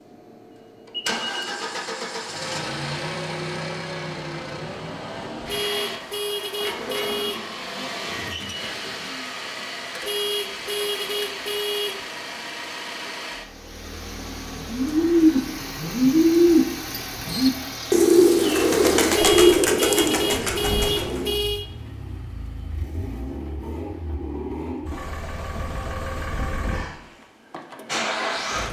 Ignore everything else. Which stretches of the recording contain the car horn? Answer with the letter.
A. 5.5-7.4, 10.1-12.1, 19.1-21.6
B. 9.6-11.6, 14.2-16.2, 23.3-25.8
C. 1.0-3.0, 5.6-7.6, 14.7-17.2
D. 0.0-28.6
A.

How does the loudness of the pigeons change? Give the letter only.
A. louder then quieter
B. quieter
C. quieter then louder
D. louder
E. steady
B.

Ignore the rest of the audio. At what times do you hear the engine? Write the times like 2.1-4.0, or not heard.
0.0-28.6.